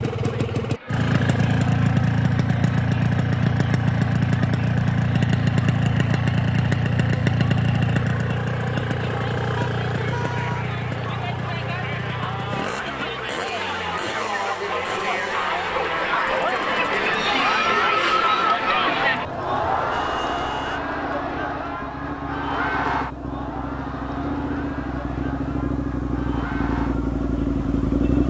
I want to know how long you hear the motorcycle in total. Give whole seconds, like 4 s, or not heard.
28 s.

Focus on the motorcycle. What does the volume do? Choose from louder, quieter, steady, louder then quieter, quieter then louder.
quieter then louder.